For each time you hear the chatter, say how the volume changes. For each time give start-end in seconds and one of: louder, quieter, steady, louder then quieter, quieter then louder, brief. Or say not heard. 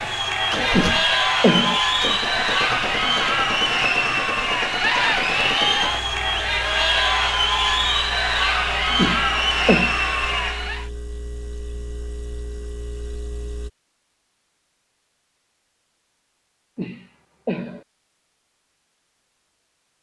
0.0-10.9 steady.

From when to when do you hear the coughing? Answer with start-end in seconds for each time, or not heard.
0.8-1.8, 8.9-9.9, 16.8-17.8.